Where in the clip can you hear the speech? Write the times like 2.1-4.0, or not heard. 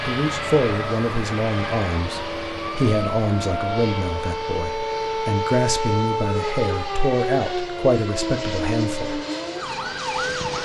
0.0-9.2.